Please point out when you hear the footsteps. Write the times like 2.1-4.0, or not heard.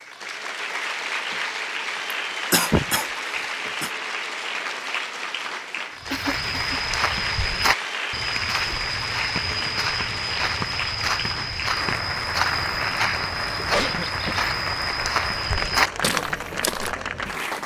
6.0-16.9.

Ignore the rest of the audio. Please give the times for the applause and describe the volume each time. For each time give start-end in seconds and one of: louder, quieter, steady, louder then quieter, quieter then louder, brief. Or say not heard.
0.0-17.6 steady.